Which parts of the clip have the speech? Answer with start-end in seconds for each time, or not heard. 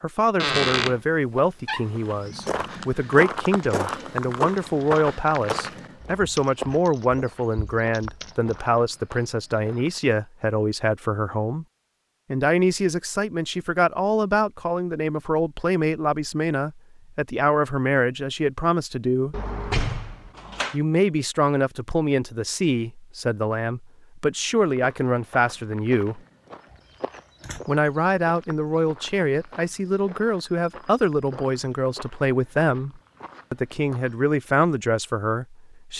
0.0-11.7, 12.3-19.4, 20.7-26.2, 27.6-35.9.